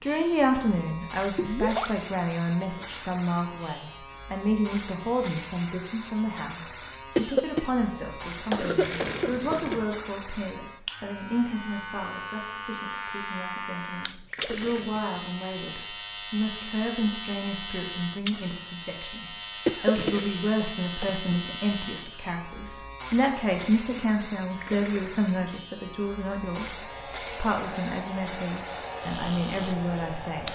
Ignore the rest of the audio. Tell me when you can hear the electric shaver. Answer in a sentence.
The electric shaver can be heard from 0.0 to 30.5 s.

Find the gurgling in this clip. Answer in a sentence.
The gurgling can be heard from 1.4 to 2.0 s, from 8.8 to 9.9 s, from 14.3 to 15.2 s, from 19.9 to 21.9 s and from 24.6 to 25.3 s.